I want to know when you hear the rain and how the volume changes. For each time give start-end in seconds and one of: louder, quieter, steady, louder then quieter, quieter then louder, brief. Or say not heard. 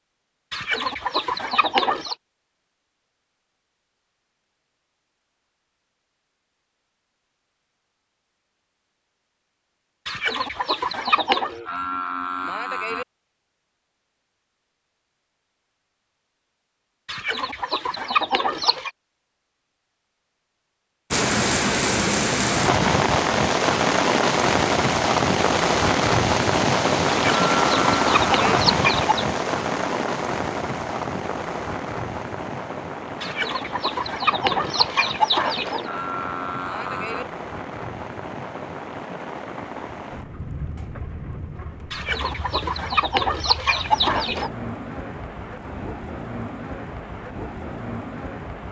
21.1-48.6 quieter.